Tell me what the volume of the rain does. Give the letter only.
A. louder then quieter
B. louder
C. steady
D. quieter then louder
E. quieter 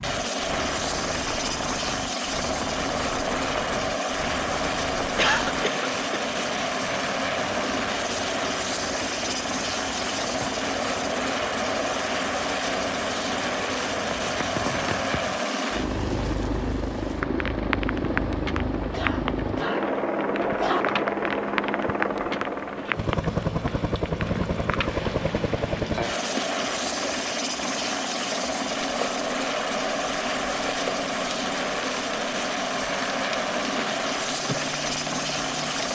C.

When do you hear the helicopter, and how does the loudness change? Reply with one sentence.
The helicopter can be heard from 0.0 to 35.9 s, at a steady volume.